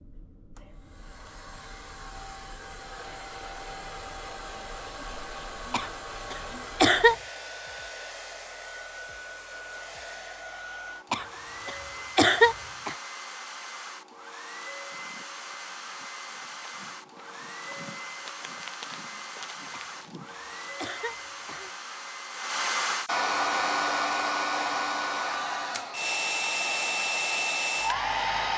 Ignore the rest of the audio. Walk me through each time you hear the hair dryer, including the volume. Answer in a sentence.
You can hear the hair dryer from 0.0 to 28.5 s, getting louder.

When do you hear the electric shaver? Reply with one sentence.
You can't hear the electric shaver here.